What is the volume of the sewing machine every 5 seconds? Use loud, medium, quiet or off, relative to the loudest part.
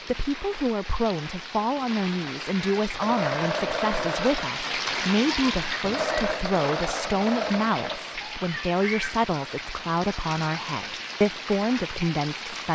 loud, loud, off.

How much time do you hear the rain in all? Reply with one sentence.
You can hear the rain for 13 seconds altogether.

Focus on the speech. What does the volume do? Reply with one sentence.
The volume of the speech stays about the same.